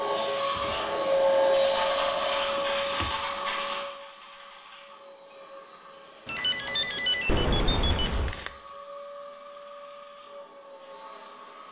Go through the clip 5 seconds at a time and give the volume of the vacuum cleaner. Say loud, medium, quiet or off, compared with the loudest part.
loud, quiet, quiet.